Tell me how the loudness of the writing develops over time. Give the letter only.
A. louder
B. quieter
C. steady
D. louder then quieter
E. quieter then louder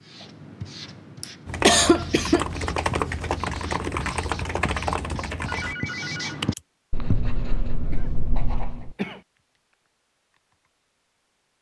A.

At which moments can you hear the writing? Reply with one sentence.
You can hear the writing from 0.0 to 8.9 s.